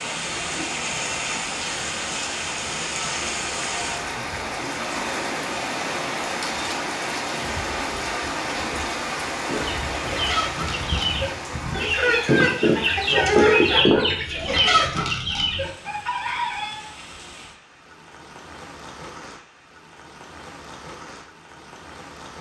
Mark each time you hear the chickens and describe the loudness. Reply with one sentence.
The chickens can be heard from 9.4 to 16.8 s, getting louder then quieter.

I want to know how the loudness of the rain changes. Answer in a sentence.
The volume of the rain goes down.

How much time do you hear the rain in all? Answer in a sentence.
The rain can be heard for 22 seconds in total.